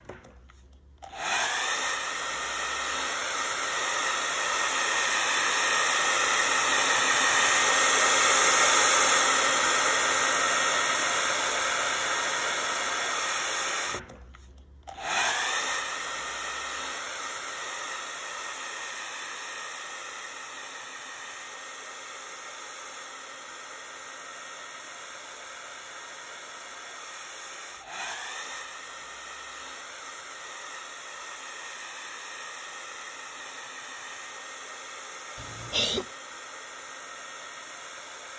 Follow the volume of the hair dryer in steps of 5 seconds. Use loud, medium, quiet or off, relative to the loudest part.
medium, loud, medium, medium, quiet, quiet, quiet, quiet.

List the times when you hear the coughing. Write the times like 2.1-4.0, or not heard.
35.4-36.0.